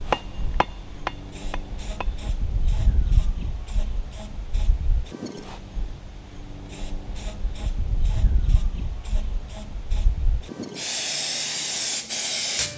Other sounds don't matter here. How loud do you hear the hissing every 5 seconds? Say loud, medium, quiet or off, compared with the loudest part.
medium, medium, loud.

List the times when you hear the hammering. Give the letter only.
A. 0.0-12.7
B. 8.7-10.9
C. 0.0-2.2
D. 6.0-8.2
C.